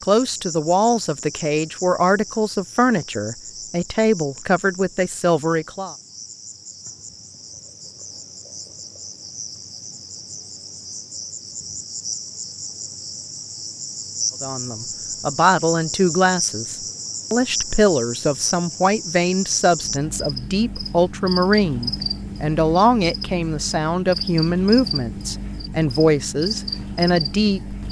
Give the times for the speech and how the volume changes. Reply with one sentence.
You can hear the speech from 0.0 to 6.0 s, at a steady volume; and from 14.4 to 27.8 s, at a steady volume.